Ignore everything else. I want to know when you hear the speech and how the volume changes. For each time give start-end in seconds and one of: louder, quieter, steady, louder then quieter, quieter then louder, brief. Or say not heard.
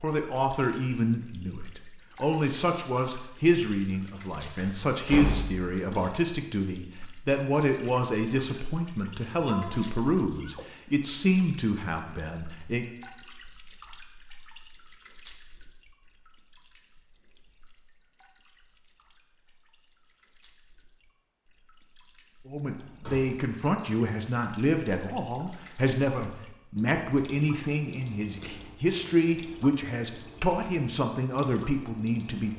0.0-12.8 steady
22.4-32.5 steady.